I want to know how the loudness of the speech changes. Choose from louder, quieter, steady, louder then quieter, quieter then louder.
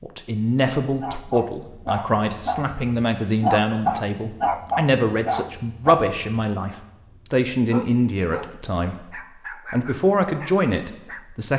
steady.